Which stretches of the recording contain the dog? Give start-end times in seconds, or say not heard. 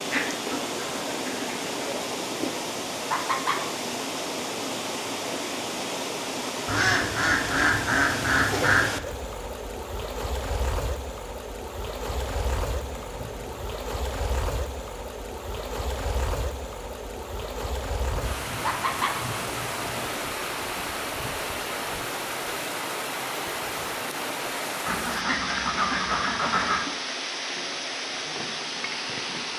not heard.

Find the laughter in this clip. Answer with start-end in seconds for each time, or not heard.
3.0-3.6, 18.6-19.1.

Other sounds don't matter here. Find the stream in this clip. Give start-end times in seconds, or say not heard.
0.0-29.5.